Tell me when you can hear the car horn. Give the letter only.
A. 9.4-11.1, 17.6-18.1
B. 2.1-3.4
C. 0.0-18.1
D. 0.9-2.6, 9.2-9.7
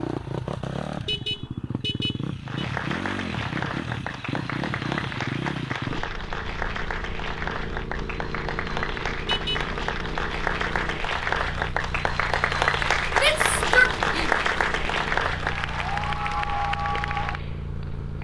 D.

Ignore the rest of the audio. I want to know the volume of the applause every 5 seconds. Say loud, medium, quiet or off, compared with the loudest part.
medium, medium, loud, loud.